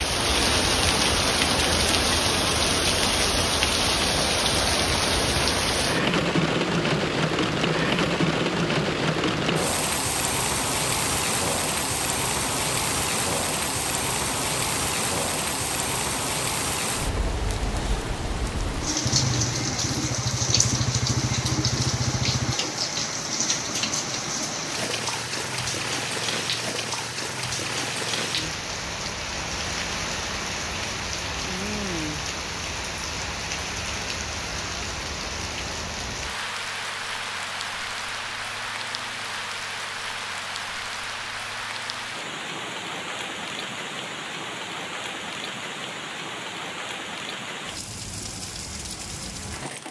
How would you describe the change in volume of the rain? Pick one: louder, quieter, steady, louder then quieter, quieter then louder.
quieter.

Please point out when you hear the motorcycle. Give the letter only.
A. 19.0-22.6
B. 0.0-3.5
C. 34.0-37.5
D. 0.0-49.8
A.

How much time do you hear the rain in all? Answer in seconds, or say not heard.
50 s.